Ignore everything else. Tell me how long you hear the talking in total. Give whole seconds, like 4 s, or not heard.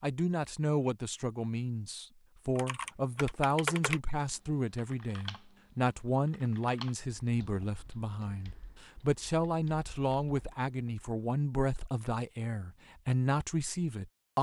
14 s.